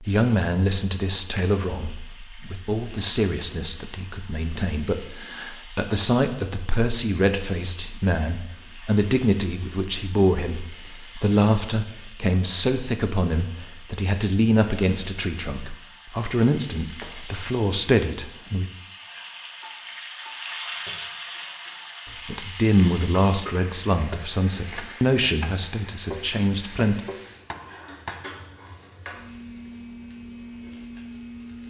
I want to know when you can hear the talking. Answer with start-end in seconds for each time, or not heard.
0.0-18.6, 22.2-27.0.